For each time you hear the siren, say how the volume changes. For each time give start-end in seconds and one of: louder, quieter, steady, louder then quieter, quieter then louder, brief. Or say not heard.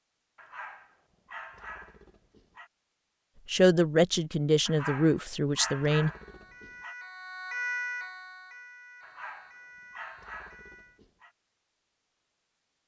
6.0-11.0 louder then quieter.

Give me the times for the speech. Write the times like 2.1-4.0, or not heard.
3.5-6.1.